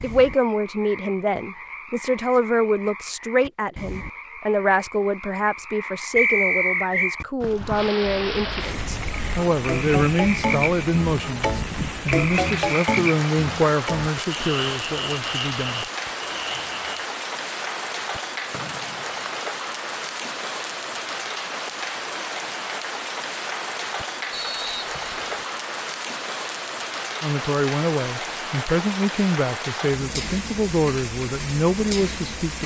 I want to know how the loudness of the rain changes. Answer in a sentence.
The volume of the rain stays about the same.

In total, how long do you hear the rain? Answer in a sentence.
The rain can be heard for 25 seconds in total.